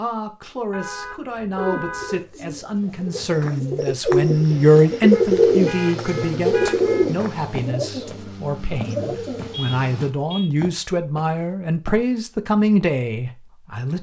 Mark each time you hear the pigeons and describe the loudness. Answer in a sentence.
You can hear the pigeons from 1.6 to 9.6 s, getting louder then quieter.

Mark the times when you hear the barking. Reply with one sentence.
The barking can't be heard in this clip.